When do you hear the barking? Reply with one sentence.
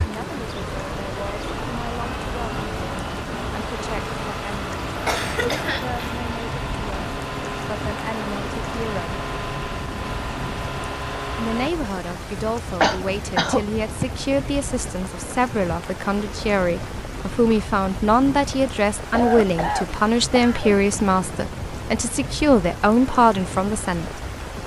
The barking can't be heard in this clip.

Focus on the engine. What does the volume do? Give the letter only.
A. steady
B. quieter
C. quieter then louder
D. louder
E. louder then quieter
A.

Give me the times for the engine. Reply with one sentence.
The engine can be heard from 0.0 to 11.7 s.